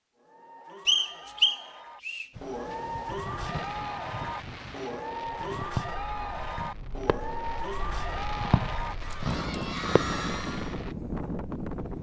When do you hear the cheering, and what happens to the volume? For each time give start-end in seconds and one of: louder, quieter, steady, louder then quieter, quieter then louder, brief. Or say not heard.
0.1-10.8 louder.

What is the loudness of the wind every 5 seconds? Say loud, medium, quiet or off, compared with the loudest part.
medium, medium, loud.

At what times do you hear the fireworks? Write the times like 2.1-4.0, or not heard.
3.4-10.9.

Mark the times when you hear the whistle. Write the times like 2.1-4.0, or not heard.
0.8-2.2.